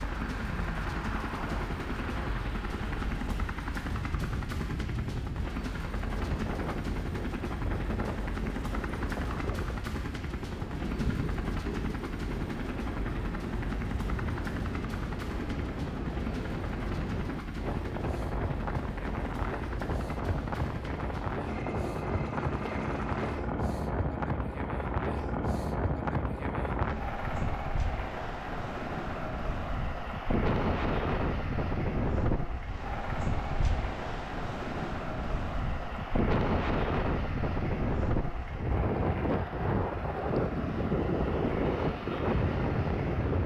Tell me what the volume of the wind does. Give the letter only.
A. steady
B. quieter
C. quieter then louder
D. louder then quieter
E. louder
E.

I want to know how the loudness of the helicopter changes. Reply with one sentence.
The loudness of the helicopter stays about the same.